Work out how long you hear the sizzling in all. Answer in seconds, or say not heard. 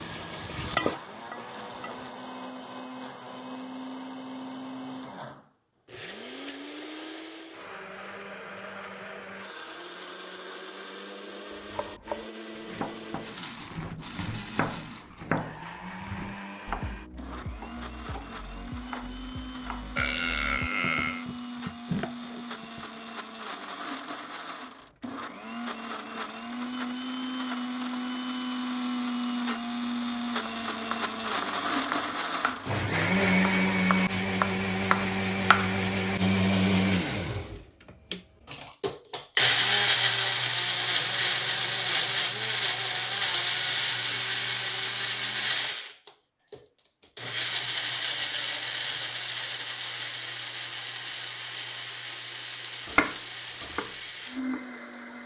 2 s.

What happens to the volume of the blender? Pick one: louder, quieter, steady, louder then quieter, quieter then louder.
louder then quieter.